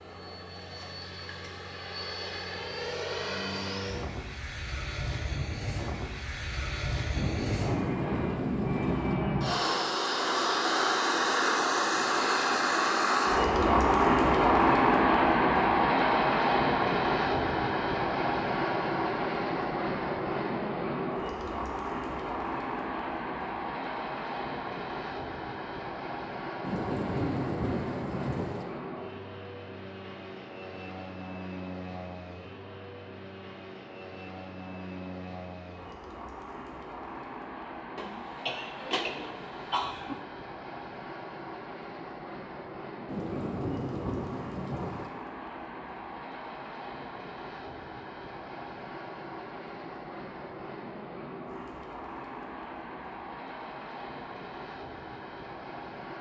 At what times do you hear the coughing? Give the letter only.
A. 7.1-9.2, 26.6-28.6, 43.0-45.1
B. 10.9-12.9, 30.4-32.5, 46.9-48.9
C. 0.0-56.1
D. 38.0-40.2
D.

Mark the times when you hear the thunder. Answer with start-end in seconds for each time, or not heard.
7.1-9.2, 26.6-28.6, 43.0-45.1.